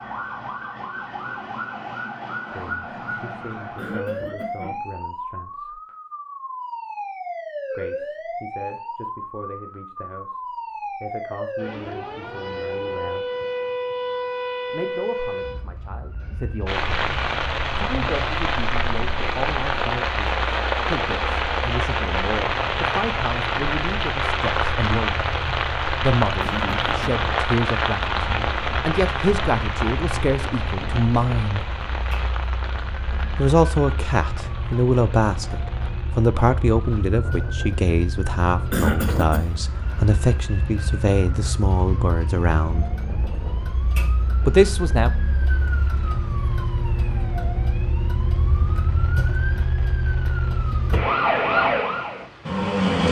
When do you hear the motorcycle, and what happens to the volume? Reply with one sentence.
The motorcycle can't be heard in this clip.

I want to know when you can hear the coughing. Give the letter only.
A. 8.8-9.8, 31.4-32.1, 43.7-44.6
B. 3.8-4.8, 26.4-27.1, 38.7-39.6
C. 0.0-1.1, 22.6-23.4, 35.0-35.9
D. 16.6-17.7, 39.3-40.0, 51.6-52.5
B.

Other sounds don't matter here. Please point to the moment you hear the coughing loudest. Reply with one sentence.
The volume of the coughing peaks at 39 seconds.